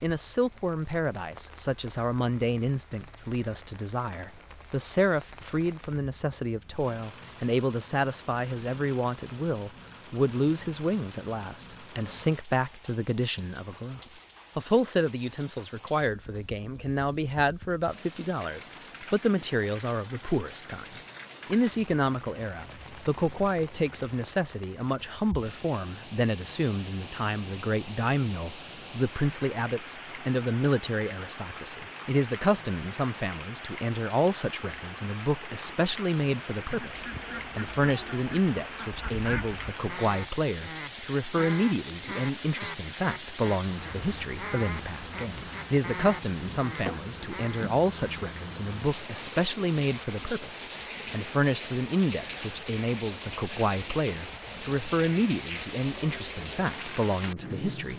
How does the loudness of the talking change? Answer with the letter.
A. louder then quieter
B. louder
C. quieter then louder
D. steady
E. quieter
D.